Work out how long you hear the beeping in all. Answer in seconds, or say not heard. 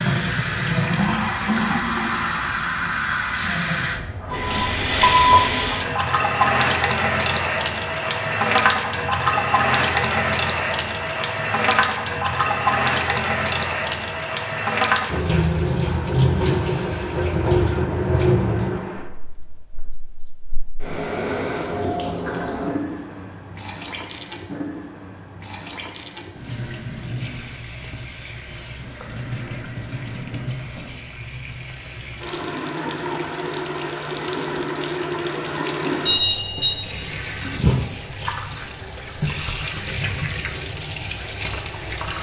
2 s.